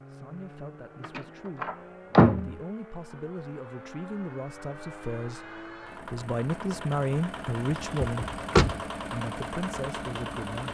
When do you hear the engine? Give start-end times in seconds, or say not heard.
0.0-10.7.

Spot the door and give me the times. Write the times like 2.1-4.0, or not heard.
1.0-2.5, 8.0-8.8.